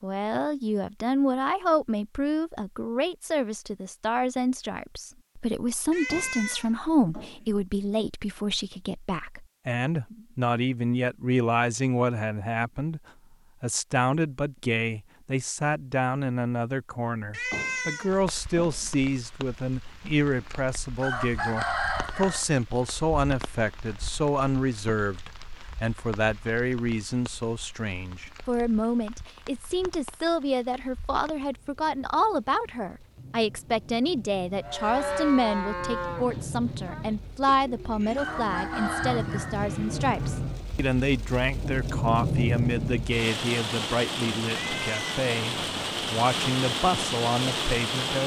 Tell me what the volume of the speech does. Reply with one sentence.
The loudness of the speech stays about the same.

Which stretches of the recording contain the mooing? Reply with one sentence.
You can hear the mooing from 34.6 to 40.6 s.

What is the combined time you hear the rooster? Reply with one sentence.
The rooster can be heard for 3 seconds in total.